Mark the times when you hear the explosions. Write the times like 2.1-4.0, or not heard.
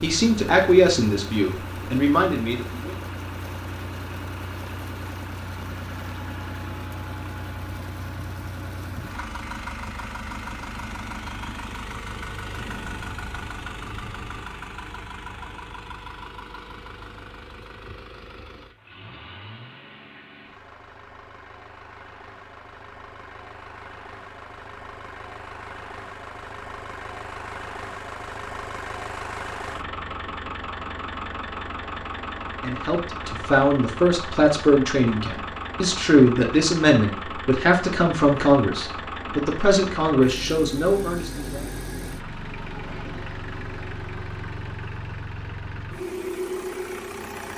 12.4-14.3.